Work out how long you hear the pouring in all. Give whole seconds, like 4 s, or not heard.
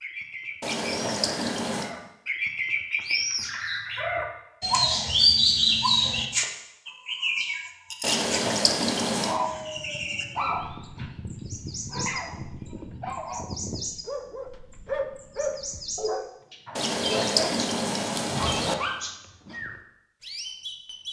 5 s.